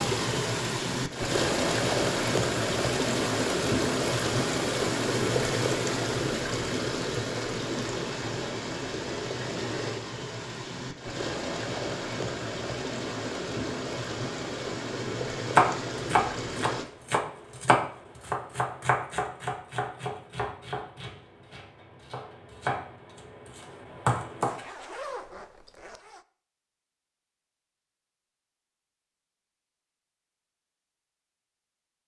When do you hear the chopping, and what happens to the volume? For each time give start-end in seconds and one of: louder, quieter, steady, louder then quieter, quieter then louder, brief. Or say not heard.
15.6-24.6 quieter then louder.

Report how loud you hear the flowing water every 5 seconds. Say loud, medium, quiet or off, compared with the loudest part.
loud, loud, medium, medium, off, off, off.